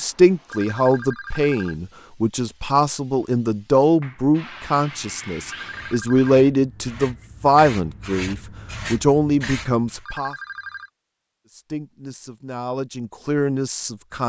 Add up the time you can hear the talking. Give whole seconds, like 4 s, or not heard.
13 s.